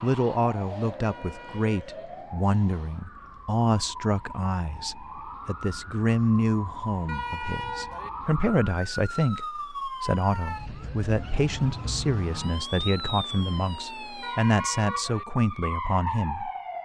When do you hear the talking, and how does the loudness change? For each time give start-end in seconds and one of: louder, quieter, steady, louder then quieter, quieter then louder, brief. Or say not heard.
0.0-16.5 steady.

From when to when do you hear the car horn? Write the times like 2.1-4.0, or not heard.
1.0-2.0, 7.0-8.1, 14.2-15.2.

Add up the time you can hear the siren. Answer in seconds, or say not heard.
17 s.